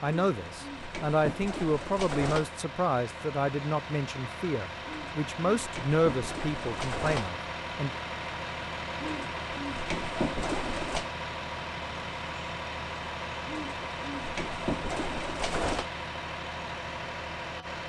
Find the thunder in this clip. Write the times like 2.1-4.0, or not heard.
not heard.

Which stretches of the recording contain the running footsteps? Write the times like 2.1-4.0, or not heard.
not heard.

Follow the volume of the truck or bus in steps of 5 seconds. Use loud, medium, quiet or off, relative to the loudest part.
medium, loud, loud, loud.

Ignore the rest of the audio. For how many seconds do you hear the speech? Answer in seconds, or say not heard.
8 s.